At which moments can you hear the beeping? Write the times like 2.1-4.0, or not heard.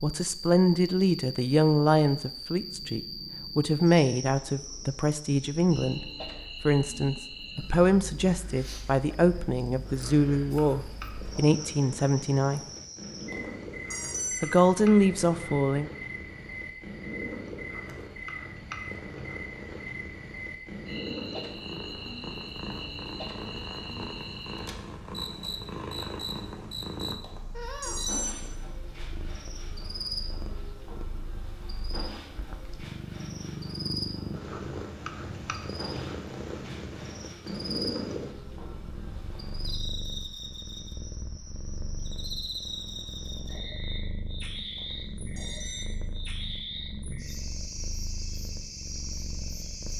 13.3-14.6, 27.2-28.5, 44.8-45.9.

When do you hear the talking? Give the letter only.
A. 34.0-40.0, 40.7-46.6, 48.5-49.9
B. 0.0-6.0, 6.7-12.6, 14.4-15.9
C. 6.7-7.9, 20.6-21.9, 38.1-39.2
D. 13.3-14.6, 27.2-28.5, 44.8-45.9
B.